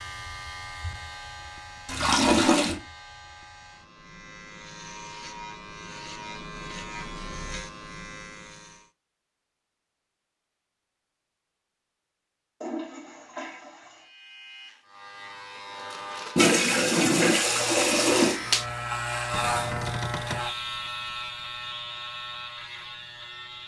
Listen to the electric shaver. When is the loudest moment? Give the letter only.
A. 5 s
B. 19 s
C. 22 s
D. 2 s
B.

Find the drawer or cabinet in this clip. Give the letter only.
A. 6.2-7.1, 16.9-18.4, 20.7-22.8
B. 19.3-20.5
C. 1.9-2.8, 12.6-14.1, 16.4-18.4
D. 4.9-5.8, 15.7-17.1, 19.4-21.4
B.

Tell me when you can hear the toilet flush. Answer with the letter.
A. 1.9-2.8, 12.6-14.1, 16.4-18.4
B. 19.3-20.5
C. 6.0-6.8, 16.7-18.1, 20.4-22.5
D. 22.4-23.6
A.